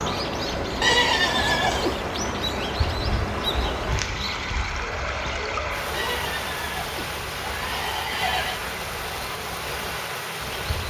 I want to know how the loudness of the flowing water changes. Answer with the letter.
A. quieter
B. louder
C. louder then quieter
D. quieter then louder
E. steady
E.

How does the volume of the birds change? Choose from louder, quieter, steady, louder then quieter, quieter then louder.
quieter.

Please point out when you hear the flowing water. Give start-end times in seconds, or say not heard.
0.0-10.8.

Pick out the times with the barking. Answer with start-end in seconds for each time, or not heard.
4.7-6.2.